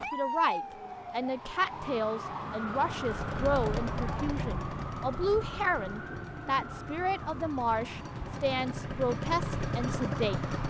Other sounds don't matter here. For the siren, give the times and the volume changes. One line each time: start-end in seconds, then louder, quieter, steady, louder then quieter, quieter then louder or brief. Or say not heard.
0.0-10.6 quieter.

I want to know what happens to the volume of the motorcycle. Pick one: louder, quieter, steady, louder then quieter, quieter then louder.
quieter then louder.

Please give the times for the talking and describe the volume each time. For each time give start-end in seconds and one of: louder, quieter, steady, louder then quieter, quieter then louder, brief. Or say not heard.
0.1-10.5 steady.